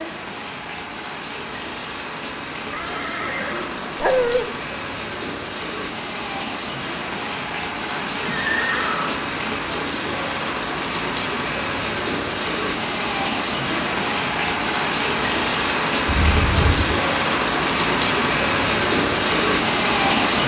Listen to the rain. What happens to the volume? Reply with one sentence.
The loudness of the rain goes up.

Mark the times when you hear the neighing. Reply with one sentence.
The neighing can be heard from 2.7 to 4.0 s, from 7.9 to 9.3 s and from 16.1 to 16.9 s.